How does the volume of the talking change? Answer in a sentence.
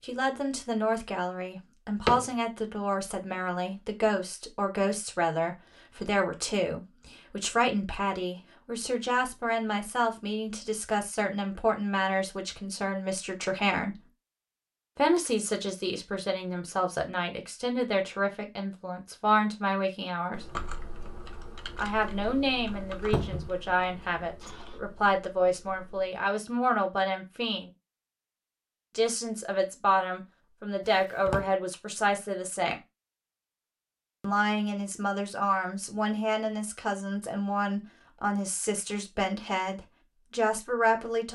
The volume of the talking stays about the same.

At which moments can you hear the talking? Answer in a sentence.
You can hear the talking from 0.0 to 13.9 s, from 14.9 to 20.4 s, from 21.8 to 27.7 s, from 28.9 to 32.8 s and from 34.2 to 41.3 s.